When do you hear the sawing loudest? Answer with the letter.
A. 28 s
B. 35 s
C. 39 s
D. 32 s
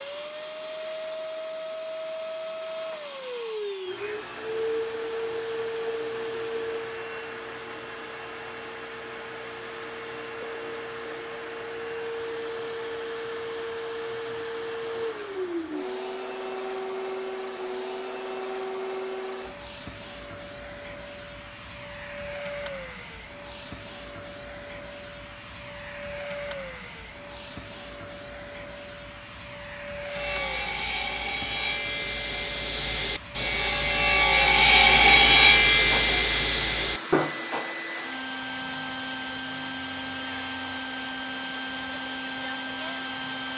B.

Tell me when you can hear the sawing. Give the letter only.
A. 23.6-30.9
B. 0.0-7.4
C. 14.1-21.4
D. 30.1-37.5
D.